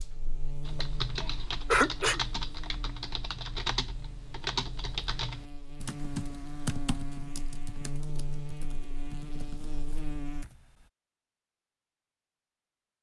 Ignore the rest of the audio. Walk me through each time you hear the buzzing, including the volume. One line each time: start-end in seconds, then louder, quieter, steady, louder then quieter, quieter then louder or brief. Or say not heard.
0.0-10.4 quieter then louder.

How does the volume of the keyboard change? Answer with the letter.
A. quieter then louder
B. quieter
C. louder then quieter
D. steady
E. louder
B.